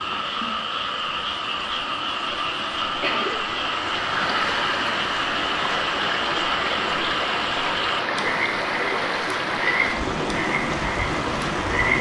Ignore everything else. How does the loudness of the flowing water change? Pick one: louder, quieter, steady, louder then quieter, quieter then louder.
louder.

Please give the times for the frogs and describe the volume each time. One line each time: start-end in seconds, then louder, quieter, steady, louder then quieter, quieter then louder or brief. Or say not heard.
0.0-11.9 steady.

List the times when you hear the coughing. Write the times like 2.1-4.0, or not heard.
2.4-3.4.